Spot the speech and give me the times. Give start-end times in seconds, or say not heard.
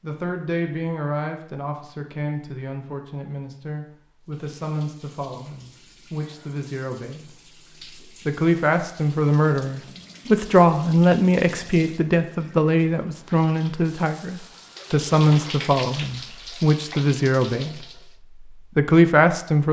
0.0-7.3, 8.2-17.8, 18.8-19.6.